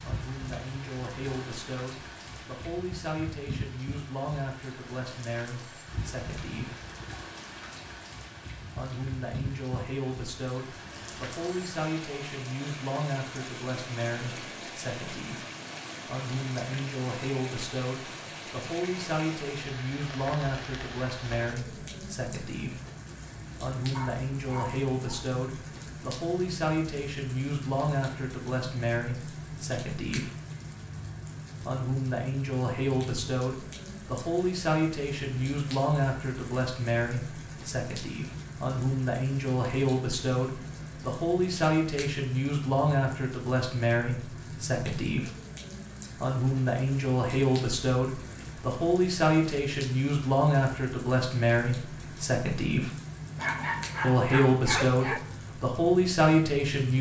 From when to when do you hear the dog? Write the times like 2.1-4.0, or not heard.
23.9-25.2, 53.4-55.2.